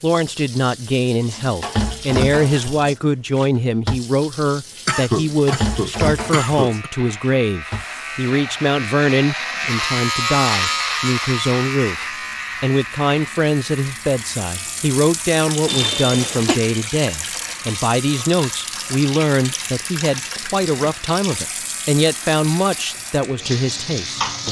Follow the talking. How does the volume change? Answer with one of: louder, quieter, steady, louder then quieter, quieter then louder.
steady.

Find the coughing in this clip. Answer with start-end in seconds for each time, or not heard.
4.8-6.9, 15.7-16.6.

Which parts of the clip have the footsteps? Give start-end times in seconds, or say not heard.
not heard.